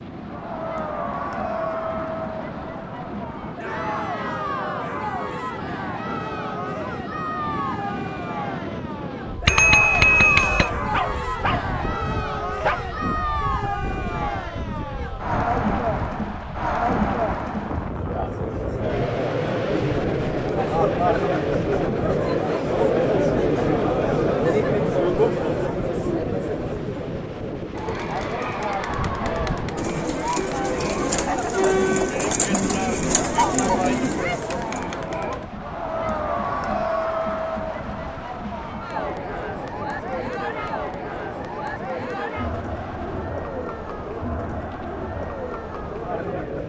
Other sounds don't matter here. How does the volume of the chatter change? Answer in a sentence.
The loudness of the chatter goes up, then down.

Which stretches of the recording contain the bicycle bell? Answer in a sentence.
The bicycle bell can be heard from 9.4 to 10.7 s.